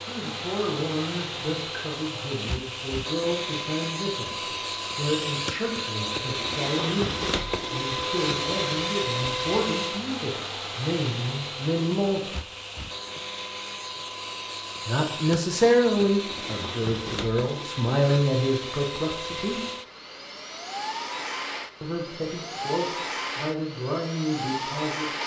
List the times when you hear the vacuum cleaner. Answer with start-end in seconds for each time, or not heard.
0.0-25.2.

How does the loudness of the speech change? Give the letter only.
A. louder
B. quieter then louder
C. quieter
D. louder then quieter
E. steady
D.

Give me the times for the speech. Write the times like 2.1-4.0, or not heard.
0.1-12.3, 14.8-19.6, 21.8-25.1.